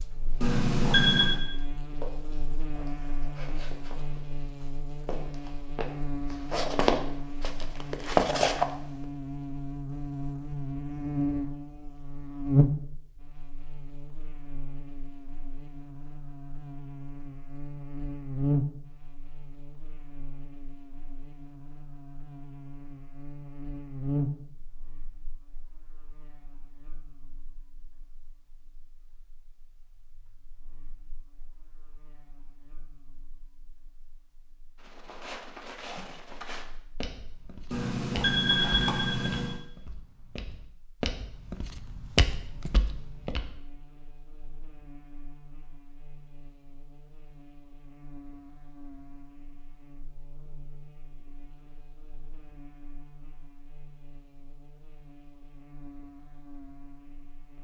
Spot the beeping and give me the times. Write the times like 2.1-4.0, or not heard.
0.4-1.4, 37.7-39.6.